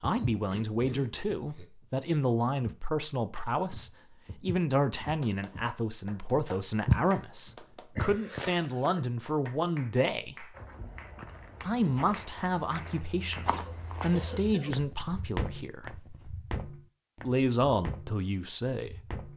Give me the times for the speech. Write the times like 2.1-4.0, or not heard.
0.0-10.6, 11.6-16.0, 17.2-19.2.